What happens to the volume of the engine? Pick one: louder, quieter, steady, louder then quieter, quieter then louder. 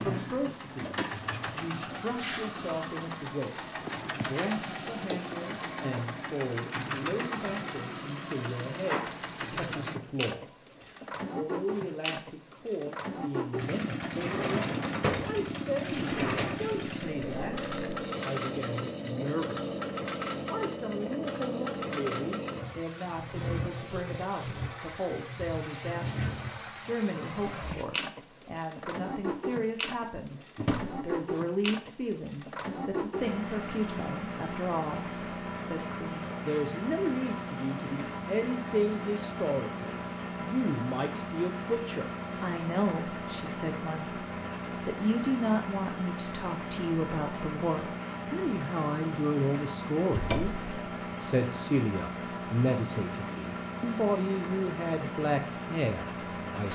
steady.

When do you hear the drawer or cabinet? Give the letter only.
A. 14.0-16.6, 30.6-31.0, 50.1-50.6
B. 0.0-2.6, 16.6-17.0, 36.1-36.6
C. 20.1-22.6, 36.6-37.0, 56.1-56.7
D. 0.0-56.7
A.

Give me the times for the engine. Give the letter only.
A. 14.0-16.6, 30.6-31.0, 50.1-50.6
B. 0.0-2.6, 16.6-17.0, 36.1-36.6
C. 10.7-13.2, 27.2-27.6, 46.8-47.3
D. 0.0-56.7
D.